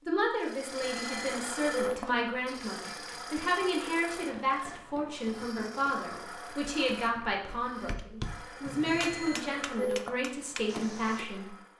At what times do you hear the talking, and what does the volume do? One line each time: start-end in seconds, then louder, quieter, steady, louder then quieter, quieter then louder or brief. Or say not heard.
0.1-11.5 steady.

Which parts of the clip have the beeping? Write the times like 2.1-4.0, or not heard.
0.8-2.0, 8.8-10.1.